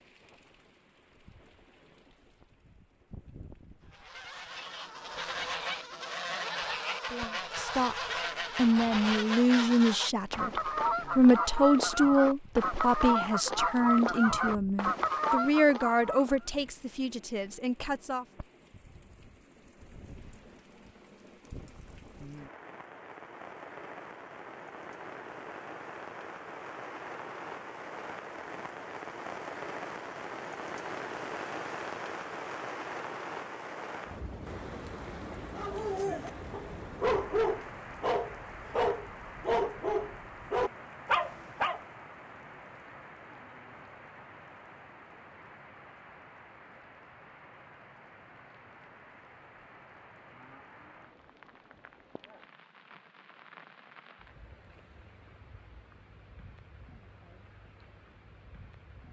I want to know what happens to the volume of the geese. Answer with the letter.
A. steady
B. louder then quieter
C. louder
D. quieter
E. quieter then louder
C.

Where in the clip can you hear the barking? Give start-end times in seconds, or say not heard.
35.5-41.8.